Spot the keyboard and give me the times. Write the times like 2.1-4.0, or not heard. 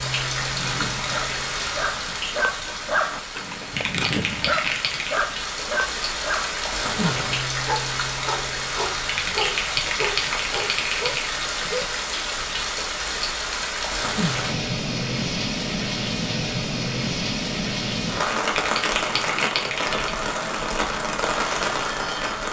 3.8-5.2, 9.1-11.3, 18.4-20.1.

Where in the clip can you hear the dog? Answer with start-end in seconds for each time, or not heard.
0.4-11.9.